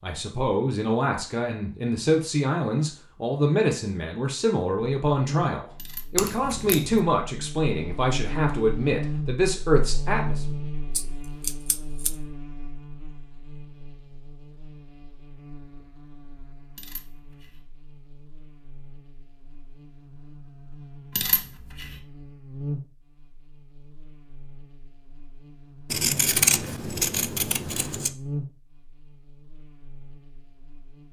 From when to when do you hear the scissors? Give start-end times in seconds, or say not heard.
6.2-7.0, 10.9-12.2, 25.9-28.1.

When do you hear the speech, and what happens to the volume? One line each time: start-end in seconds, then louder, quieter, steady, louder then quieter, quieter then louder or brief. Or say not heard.
0.0-10.4 steady.